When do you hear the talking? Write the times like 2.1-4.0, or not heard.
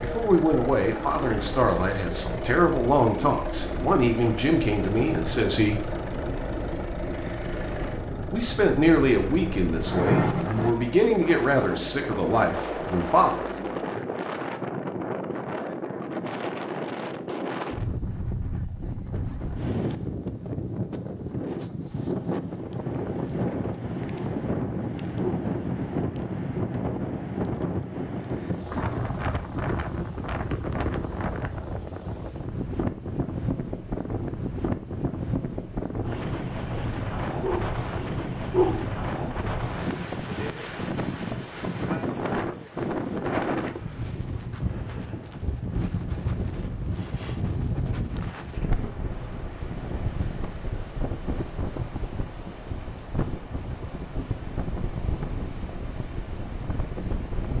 0.0-5.9, 8.3-13.4.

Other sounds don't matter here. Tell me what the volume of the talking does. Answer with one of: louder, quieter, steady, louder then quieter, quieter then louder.
steady.